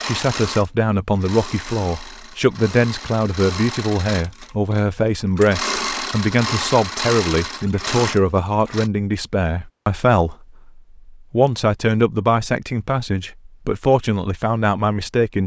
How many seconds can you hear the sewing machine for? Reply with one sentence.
You can hear the sewing machine for 9 seconds altogether.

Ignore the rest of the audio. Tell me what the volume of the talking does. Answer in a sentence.
The loudness of the talking stays about the same.